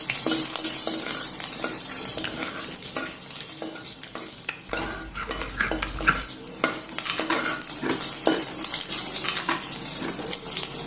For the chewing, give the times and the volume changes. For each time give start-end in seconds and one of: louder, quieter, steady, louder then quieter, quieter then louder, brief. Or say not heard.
1.9-6.2 quieter then louder
7.0-8.5 brief
9.2-10.2 brief.